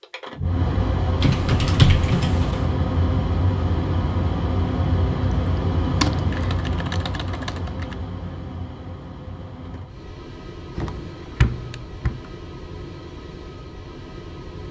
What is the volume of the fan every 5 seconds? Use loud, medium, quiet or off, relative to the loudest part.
loud, loud, quiet.